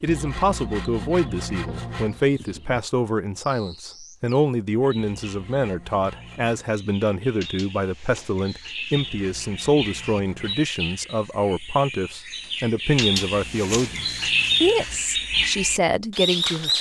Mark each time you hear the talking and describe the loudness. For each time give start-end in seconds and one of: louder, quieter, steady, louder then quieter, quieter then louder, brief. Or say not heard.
0.0-16.7 steady.